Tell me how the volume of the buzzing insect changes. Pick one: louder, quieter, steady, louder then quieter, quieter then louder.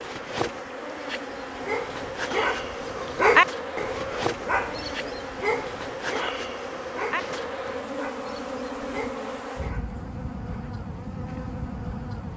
steady.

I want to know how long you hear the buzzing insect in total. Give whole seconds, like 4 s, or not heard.
12 s.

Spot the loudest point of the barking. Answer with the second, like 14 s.
3 s.